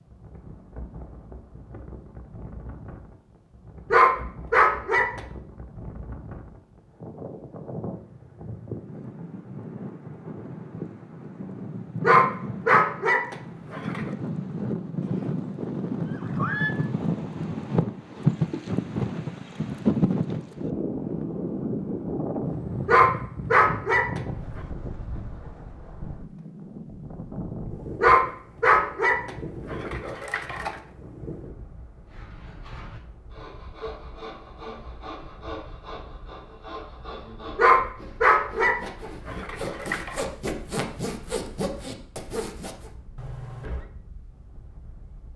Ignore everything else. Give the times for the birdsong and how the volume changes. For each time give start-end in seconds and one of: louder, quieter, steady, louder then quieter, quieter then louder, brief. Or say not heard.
not heard.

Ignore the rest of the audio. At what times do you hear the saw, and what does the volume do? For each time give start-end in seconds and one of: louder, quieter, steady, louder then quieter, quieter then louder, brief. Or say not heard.
32.0-42.9 louder.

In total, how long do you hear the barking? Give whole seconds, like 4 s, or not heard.
10 s.